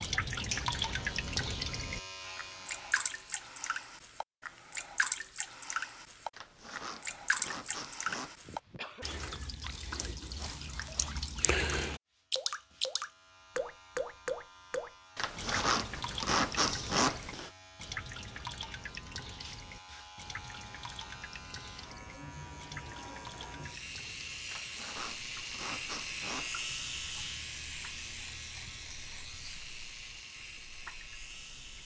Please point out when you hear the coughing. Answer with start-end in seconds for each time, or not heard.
8.4-9.1.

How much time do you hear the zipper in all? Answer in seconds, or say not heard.
7 s.